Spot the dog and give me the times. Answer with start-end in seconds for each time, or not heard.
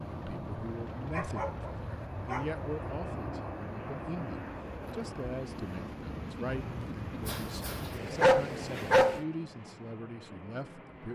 1.1-2.6, 6.6-9.2.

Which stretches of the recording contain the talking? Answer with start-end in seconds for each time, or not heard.
0.1-11.1.